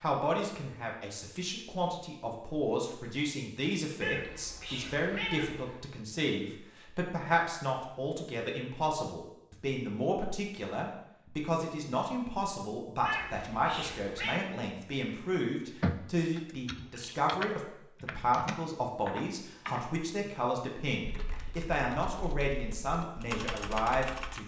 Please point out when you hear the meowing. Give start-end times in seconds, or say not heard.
4.0-5.8, 13.0-14.3.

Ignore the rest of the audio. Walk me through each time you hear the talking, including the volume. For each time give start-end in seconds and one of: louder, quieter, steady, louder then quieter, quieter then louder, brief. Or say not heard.
0.0-24.4 steady.